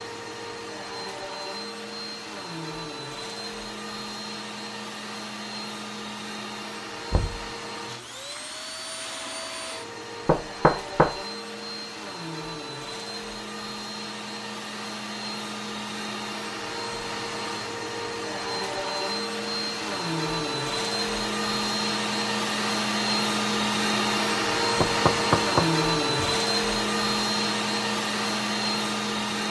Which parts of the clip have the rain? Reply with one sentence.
You can't hear the rain here.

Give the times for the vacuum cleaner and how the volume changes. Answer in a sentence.
You can hear the vacuum cleaner from 0.0 to 29.4 s, getting louder.